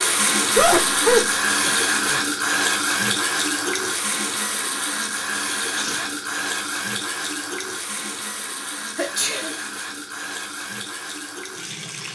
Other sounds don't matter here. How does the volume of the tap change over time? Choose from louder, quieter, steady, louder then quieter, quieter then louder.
quieter.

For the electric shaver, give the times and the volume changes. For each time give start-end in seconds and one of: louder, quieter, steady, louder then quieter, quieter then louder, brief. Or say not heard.
not heard.